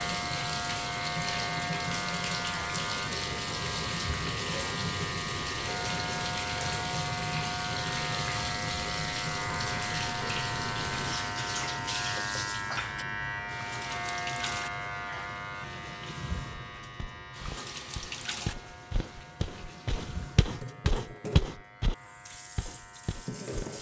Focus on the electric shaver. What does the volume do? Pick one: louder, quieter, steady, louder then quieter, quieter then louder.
quieter.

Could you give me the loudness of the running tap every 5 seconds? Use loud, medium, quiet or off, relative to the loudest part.
loud, loud, loud, medium, medium.